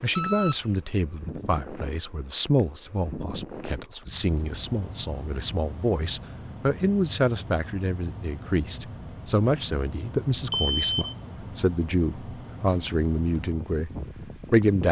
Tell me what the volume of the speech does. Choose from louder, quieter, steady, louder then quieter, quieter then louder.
steady.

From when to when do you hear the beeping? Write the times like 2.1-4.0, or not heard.
0.1-0.8, 10.5-11.2.